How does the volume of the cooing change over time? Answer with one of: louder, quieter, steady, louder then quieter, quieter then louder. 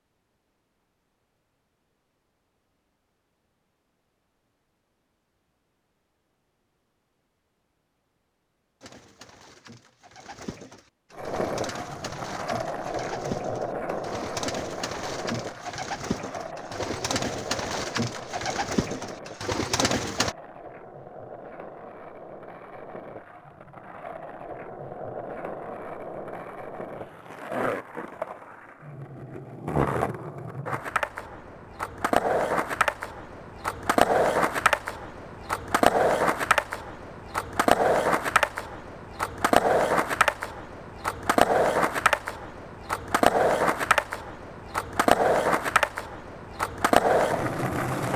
louder.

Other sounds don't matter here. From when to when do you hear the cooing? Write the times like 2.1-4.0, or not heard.
8.8-20.4.